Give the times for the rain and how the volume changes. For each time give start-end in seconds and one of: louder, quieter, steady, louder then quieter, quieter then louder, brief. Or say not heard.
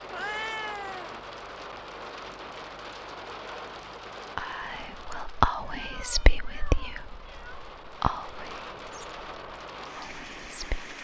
0.0-10.9 quieter then louder.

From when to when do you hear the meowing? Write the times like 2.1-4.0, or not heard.
0.1-1.2, 5.7-7.5.